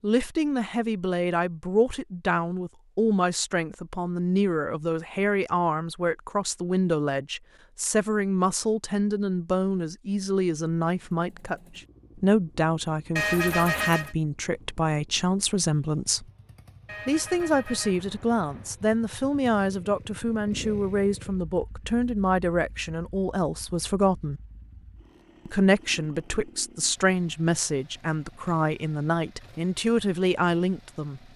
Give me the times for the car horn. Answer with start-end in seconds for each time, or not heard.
13.2-14.2, 16.9-18.8.